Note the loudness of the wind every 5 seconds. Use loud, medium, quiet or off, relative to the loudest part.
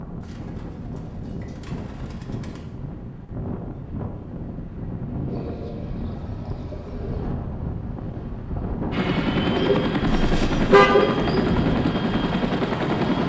medium, loud, loud.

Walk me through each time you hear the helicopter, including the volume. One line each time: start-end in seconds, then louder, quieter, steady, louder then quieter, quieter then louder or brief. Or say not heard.
8.9-13.2 steady.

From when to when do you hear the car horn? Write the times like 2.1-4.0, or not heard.
10.1-10.9.